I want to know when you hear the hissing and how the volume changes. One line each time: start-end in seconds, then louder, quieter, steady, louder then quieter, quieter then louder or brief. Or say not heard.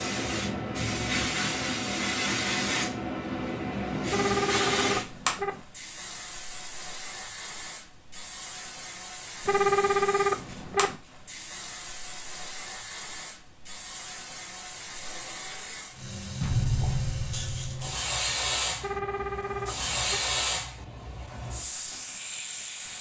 0.0-22.9 quieter then louder.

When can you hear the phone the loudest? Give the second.
10 s.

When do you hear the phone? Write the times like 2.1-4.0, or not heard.
4.1-5.6, 9.4-10.9, 18.8-20.2.